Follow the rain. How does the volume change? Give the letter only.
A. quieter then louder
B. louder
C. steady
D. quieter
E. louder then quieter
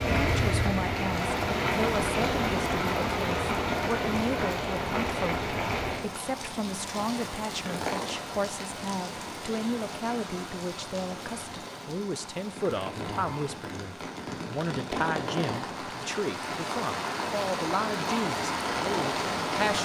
A.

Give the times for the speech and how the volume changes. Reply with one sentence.
You can hear the speech from 0.2 to 19.8 s, at a steady volume.